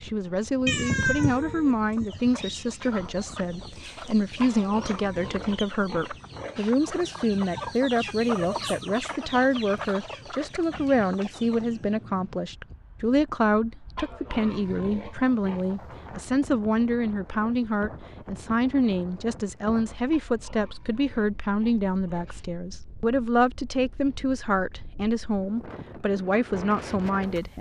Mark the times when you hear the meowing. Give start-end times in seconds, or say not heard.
0.7-2.5.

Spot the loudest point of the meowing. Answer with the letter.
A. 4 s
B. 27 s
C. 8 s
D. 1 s
D.